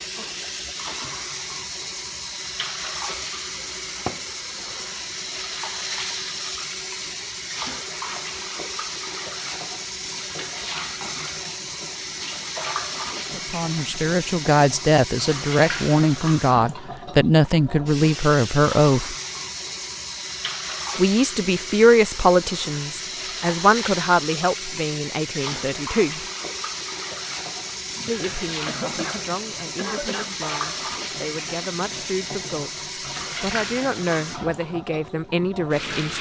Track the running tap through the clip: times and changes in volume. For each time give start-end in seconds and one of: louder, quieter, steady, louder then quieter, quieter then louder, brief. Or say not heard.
0.0-36.1 steady.